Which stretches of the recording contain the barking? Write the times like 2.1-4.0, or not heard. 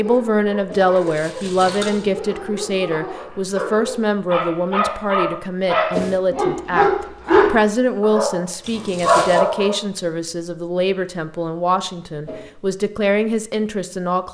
0.0-9.8.